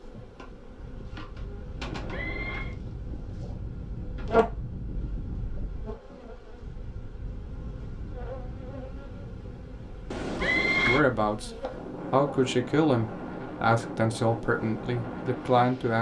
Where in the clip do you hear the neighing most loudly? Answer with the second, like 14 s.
11 s.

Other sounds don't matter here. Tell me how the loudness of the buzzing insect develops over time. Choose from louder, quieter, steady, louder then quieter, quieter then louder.
louder then quieter.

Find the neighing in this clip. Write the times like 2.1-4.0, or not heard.
1.8-2.8, 10.1-11.0.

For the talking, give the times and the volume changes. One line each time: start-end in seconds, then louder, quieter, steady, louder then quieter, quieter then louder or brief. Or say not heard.
10.8-15.9 louder then quieter.